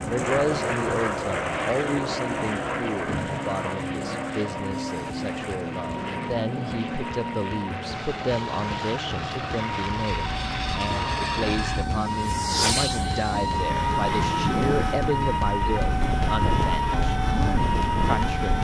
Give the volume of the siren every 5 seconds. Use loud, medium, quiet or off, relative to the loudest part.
medium, medium, loud, loud.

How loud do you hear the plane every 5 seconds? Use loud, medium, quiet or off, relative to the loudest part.
loud, medium, loud, loud.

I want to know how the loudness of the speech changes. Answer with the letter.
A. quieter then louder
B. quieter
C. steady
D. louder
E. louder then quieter
C.